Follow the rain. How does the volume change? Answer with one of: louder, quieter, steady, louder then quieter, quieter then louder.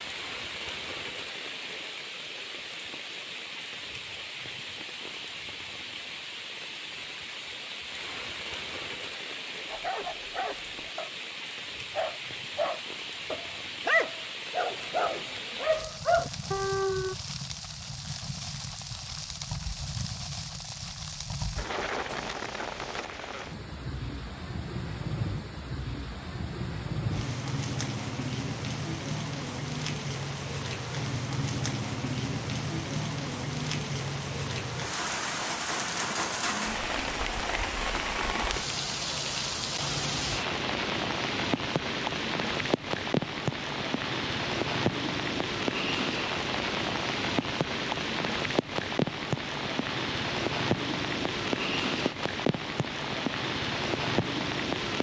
louder.